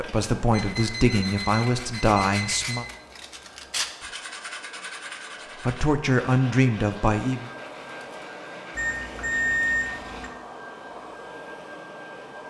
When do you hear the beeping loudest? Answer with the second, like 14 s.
10 s.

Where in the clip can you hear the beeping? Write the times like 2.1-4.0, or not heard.
0.5-2.9, 8.8-10.3.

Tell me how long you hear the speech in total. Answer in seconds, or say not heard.
5 s.